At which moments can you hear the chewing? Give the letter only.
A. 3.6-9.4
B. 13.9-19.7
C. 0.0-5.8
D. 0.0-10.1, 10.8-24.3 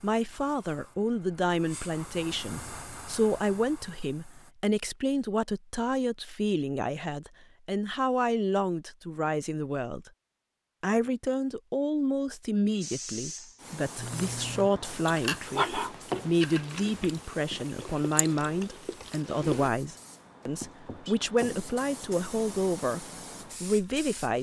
B.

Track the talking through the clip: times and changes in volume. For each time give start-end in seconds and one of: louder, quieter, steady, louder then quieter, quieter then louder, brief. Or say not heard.
0.0-10.1 steady
10.8-24.3 steady.